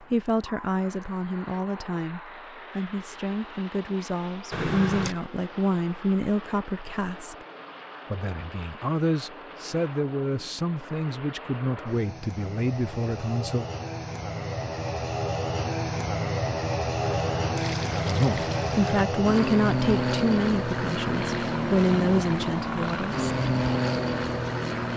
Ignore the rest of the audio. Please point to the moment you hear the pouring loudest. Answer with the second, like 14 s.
5 s.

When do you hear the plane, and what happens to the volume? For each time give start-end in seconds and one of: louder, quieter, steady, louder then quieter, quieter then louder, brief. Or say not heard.
0.0-24.9 louder.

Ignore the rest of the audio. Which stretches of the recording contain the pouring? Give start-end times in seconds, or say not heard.
4.5-5.2, 17.2-19.1.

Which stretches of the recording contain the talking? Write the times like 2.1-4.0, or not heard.
0.0-7.3, 8.1-13.7, 18.0-23.3.